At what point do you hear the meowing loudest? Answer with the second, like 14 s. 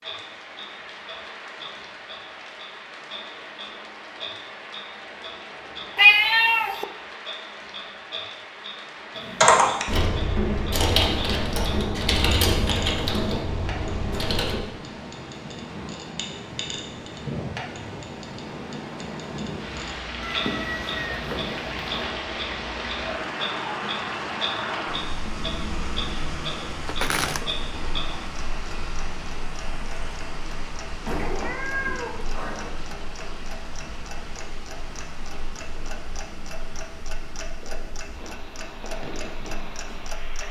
6 s.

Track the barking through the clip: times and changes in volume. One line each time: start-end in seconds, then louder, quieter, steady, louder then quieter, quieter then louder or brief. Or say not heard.
not heard.